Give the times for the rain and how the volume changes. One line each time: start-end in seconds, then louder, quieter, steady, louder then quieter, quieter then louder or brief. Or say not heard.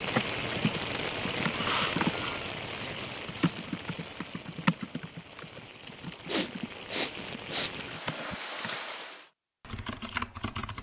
0.0-9.3 quieter then louder.